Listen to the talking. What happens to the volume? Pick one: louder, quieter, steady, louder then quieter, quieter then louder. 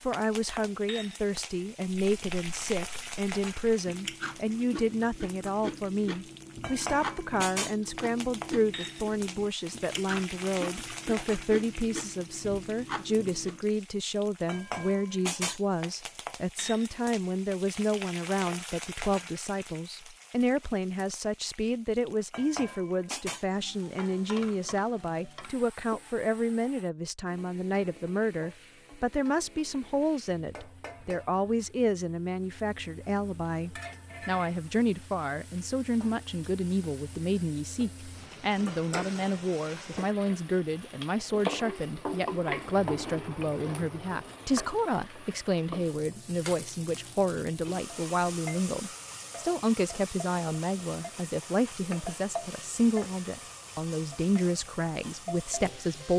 steady.